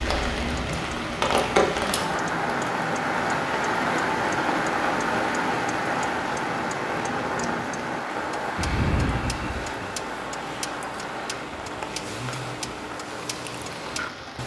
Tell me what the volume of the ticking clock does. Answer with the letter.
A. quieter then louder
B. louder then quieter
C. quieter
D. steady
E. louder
D.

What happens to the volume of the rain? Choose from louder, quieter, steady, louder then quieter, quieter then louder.
quieter.